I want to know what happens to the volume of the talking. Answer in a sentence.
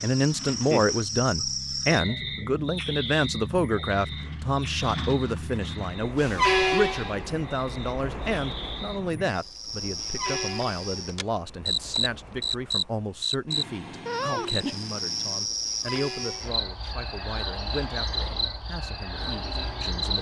The loudness of the talking goes down.